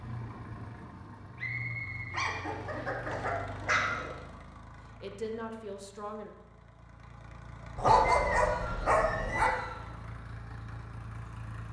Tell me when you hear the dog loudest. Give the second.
8 s.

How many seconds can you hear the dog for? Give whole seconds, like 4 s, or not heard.
4 s.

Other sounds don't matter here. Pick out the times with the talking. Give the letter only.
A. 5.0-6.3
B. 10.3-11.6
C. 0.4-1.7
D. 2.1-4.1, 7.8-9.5
A.